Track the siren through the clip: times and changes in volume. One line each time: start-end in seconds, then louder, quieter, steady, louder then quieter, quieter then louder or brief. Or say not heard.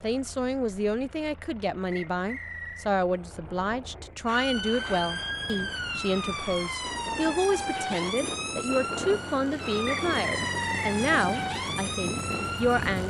4.2-13.0 steady.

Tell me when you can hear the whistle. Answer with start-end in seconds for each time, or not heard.
1.9-2.9, 9.8-10.9.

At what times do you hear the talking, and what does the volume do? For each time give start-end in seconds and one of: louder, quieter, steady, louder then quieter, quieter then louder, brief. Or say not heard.
0.0-13.0 steady.